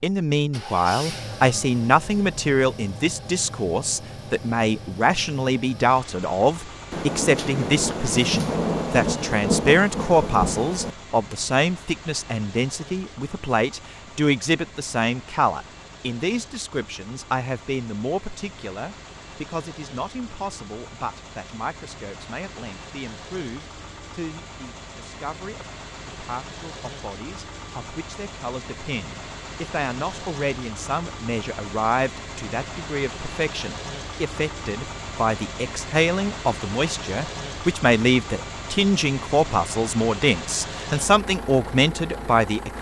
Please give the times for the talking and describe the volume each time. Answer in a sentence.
The talking can be heard from 0.0 to 42.7 s, getting quieter then louder.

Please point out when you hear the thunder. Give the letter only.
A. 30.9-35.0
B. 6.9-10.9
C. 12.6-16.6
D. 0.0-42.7
B.